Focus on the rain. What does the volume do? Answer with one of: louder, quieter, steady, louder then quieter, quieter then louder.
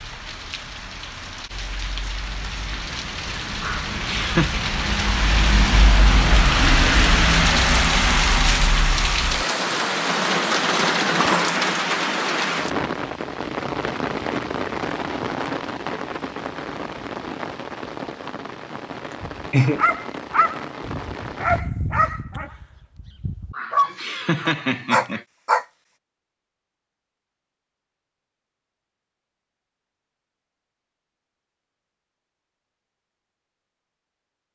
louder then quieter.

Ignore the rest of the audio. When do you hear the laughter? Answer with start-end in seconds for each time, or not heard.
3.6-4.5, 19.1-19.8, 23.5-25.2.